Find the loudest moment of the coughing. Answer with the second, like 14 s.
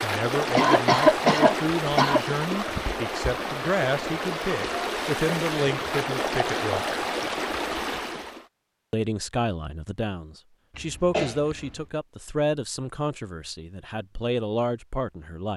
1 s.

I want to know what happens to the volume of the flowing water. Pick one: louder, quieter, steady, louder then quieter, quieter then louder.
steady.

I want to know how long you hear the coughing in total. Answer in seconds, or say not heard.
3 s.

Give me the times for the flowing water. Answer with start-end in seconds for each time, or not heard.
0.0-8.4.